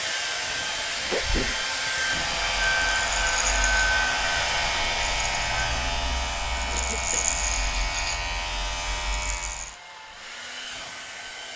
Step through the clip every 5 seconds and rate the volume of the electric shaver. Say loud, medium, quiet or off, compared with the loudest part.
loud, loud, off.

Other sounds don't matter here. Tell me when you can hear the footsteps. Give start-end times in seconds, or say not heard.
not heard.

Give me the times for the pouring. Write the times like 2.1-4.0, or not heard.
not heard.